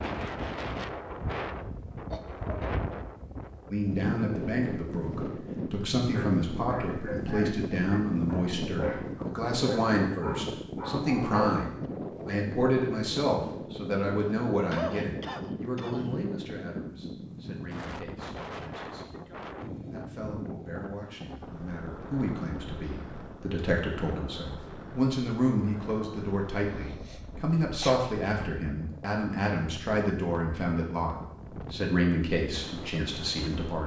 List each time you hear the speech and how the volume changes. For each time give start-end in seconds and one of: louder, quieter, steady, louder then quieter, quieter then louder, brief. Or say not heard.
3.7-33.8 quieter then louder.